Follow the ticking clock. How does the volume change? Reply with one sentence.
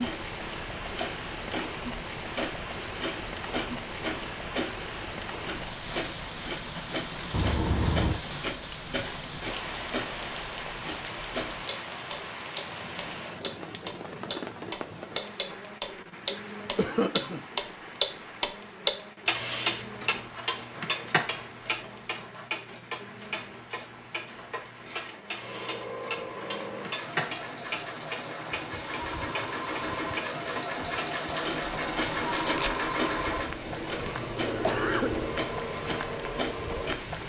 The volume of the ticking clock goes up, then down.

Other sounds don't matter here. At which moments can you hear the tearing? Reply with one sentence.
The tearing can be heard from 32.3 to 32.8 s.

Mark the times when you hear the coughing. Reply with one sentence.
You can hear the coughing from 7.3 to 8.2 s, from 16.8 to 17.4 s and from 34.5 to 35.1 s.